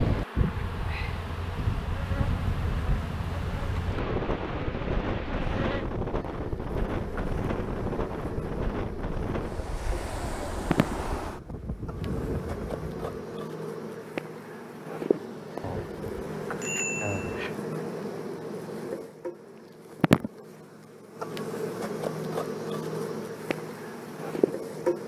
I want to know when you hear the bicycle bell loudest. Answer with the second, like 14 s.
17 s.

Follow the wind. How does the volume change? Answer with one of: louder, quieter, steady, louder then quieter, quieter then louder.
steady.